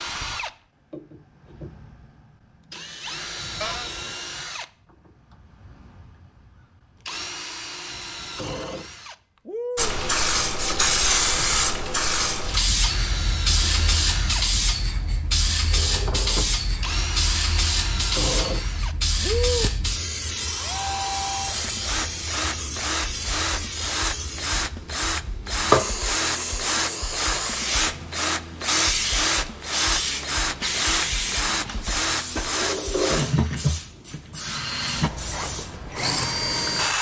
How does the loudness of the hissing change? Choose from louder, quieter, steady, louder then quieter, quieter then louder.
quieter.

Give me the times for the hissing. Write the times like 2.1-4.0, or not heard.
9.8-36.9.